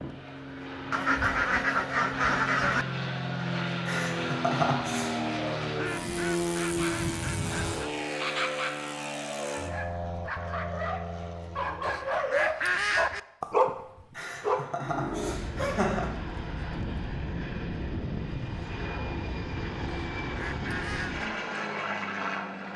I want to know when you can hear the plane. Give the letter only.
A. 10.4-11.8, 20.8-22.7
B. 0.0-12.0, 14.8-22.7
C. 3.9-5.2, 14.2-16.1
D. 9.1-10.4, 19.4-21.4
B.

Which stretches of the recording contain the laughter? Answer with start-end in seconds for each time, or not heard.
3.9-5.2, 14.2-16.1.